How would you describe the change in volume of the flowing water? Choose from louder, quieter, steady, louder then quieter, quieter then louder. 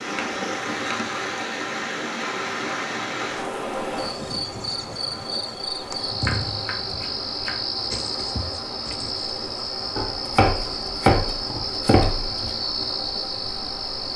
quieter.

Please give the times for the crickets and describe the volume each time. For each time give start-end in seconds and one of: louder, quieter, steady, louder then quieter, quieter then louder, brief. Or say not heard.
3.9-14.1 steady.